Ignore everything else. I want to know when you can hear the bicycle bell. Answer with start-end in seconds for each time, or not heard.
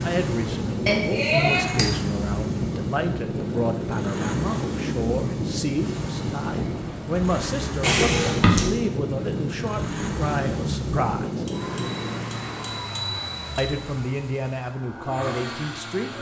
0.8-1.9, 7.8-8.7, 11.4-13.8.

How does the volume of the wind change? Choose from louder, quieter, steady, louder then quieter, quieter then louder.
steady.